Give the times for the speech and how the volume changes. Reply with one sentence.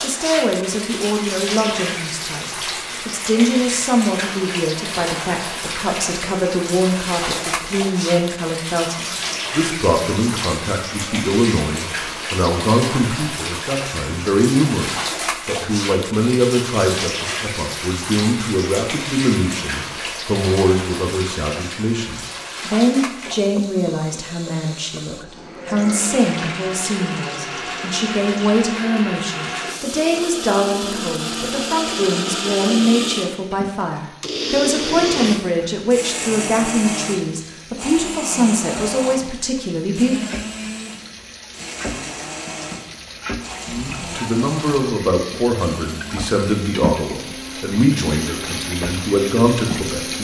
You can hear the speech from 0.0 to 40.3 s, at a steady volume; and from 43.6 to 50.1 s, at a steady volume.